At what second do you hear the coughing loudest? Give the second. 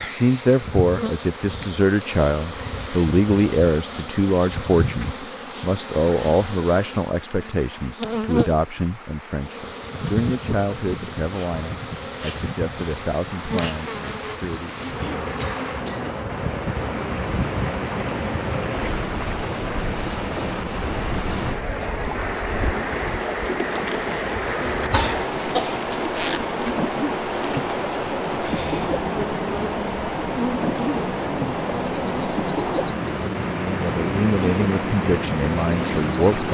25 s.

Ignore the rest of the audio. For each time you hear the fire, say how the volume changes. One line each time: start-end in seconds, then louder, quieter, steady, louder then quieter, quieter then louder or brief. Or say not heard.
not heard.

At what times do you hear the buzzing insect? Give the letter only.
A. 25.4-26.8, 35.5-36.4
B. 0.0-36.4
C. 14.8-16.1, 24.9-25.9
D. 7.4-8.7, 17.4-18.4
B.